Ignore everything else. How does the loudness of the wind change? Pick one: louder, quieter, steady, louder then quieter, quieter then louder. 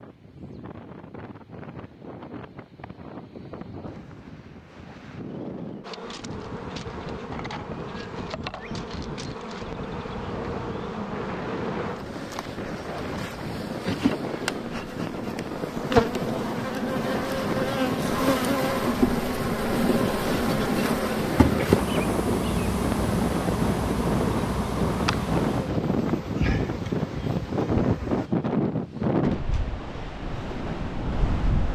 louder.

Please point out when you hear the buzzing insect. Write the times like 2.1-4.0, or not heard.
5.8-28.3.